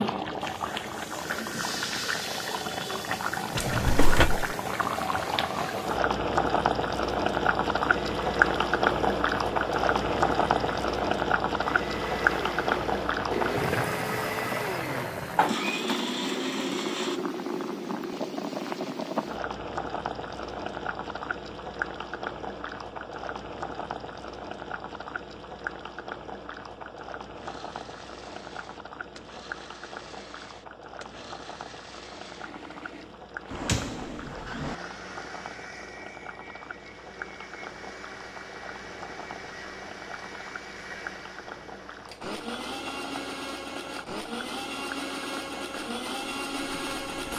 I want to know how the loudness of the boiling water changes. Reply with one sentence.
The loudness of the boiling water goes down.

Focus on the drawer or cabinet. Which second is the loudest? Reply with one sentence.
The loudest moment of the drawer or cabinet is at 4 seconds.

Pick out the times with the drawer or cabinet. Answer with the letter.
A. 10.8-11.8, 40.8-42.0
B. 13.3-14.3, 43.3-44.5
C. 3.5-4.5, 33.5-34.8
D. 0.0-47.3
C.